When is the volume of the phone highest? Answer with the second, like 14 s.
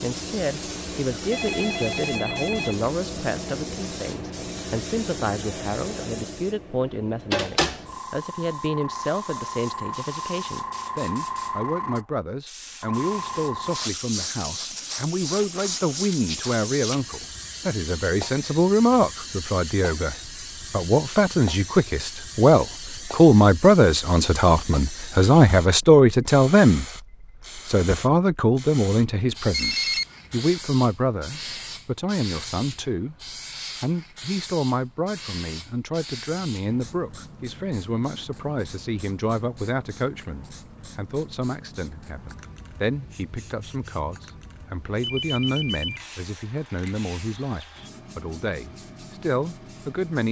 30 s.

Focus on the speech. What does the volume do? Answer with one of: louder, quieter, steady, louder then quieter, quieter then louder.
louder then quieter.